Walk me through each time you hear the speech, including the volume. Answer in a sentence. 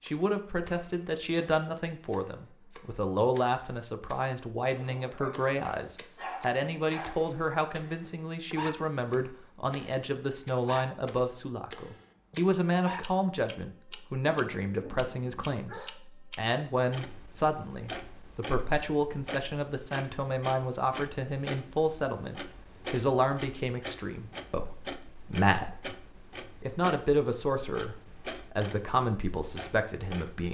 You can hear the speech from 0.0 to 30.4 s, at a steady volume.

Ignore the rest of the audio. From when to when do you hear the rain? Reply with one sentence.
The rain can't be heard in this clip.